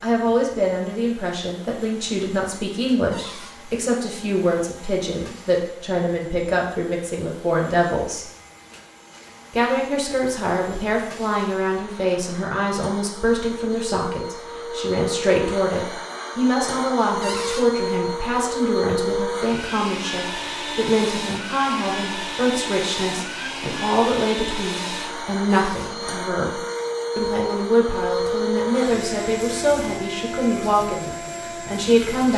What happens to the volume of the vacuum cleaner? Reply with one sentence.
The loudness of the vacuum cleaner goes up.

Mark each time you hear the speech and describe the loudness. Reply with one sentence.
You can hear the speech from 0.0 to 8.2 s, at a steady volume; and from 9.5 to 32.3 s, at a steady volume.